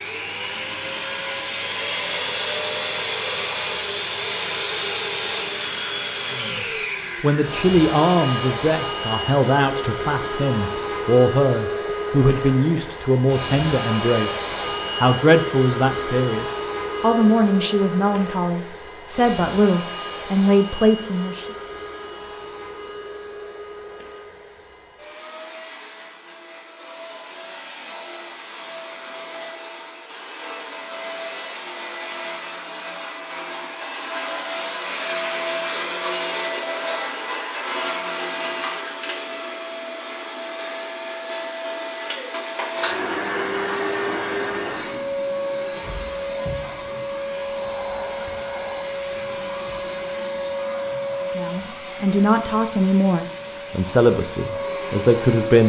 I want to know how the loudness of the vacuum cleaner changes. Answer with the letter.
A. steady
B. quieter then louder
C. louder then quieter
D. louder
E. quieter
B.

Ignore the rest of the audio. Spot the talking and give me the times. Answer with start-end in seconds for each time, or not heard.
6.3-21.4, 51.2-55.6.